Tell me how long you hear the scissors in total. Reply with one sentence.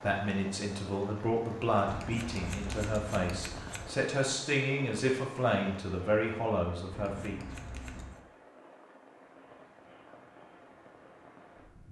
The scissors can be heard for 3 seconds in total.